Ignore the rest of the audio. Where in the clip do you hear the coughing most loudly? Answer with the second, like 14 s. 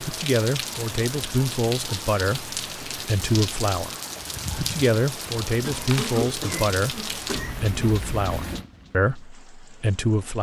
6 s.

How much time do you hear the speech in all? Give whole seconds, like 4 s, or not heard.
10 s.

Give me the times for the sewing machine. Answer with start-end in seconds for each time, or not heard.
not heard.